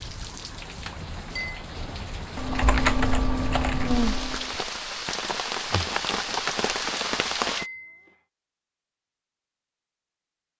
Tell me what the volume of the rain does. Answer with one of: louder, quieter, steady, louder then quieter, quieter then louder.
louder.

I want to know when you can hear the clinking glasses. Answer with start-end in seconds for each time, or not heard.
0.8-1.6, 7.5-8.0.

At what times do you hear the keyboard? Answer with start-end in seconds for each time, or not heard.
2.4-4.6.